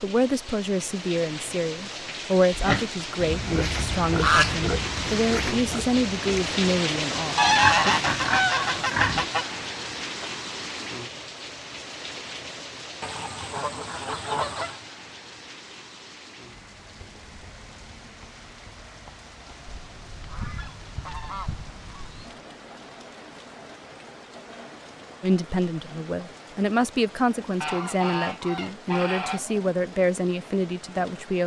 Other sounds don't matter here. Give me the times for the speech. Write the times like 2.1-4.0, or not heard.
0.0-8.0, 25.2-31.4.